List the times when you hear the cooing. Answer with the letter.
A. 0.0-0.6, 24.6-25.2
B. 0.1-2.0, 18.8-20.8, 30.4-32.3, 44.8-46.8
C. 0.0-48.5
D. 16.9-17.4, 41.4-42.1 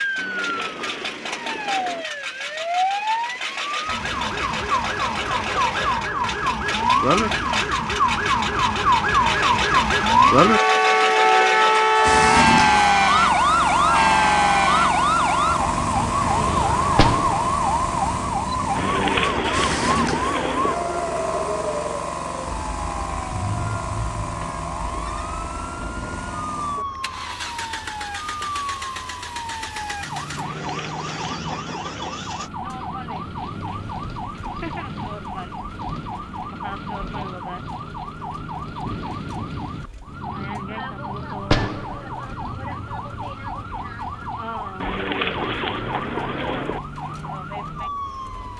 B.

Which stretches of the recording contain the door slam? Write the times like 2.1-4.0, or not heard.
16.9-17.4, 41.4-42.1.